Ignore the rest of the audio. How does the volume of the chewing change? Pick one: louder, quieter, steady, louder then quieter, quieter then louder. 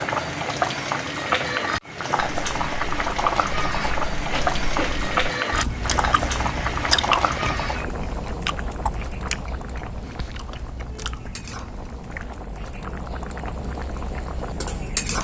louder then quieter.